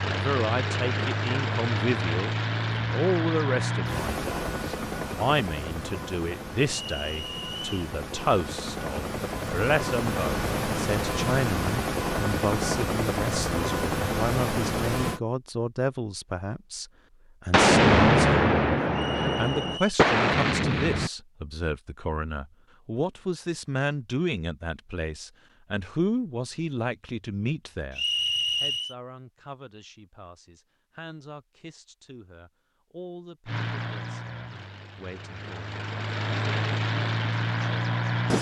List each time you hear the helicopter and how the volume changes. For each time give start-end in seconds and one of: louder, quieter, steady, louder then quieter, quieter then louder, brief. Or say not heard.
0.0-15.2 quieter then louder
33.5-38.3 quieter then louder.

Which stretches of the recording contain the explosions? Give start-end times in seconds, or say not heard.
17.5-21.1.